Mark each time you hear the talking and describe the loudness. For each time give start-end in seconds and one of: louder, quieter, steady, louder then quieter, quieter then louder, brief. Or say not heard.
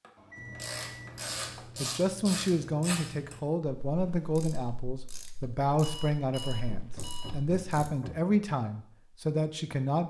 1.8-10.0 steady.